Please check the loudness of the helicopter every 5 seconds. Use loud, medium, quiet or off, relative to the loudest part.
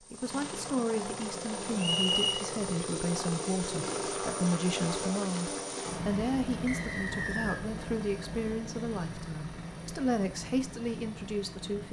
loud, loud, medium.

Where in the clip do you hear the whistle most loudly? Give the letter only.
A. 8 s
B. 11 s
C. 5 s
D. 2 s
D.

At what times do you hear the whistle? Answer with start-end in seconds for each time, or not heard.
1.8-2.4, 6.7-7.6.